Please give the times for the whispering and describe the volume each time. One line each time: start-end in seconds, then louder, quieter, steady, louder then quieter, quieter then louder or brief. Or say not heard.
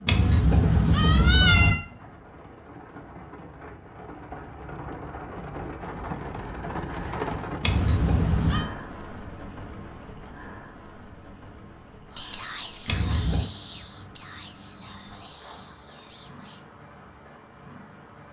12.1-16.6 quieter.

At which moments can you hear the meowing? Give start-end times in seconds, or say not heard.
0.1-1.8, 7.6-8.7, 12.8-13.5.